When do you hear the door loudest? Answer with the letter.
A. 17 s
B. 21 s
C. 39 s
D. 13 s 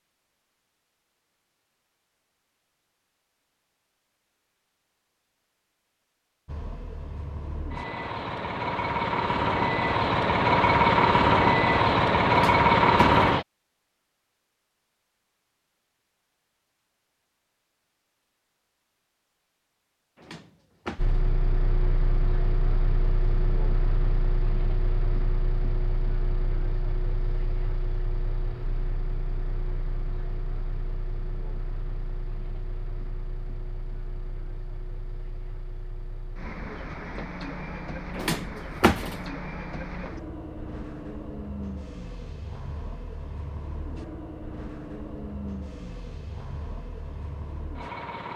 C.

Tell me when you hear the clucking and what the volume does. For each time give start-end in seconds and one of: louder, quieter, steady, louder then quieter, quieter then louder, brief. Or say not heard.
not heard.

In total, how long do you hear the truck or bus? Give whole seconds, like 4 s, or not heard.
34 s.